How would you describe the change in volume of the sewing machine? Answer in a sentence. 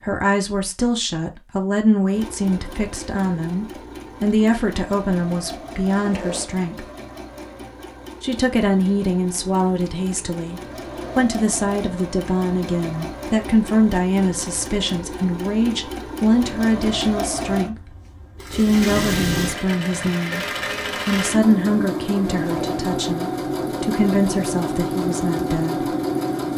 The volume of the sewing machine goes up.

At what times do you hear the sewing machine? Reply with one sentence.
The sewing machine can be heard from 2.1 to 26.5 s.